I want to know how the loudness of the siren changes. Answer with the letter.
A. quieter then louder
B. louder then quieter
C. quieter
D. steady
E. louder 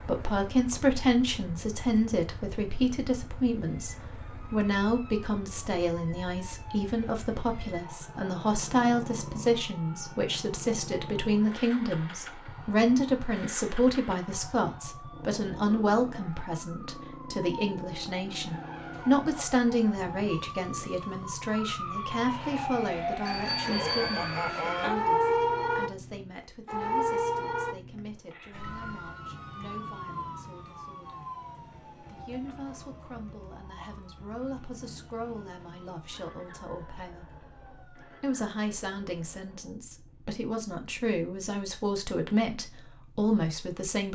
B.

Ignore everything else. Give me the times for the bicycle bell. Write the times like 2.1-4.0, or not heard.
23.2-24.9.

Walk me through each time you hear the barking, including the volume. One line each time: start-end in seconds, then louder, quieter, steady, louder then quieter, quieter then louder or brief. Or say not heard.
not heard.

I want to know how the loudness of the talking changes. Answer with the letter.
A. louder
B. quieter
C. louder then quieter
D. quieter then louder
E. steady
D.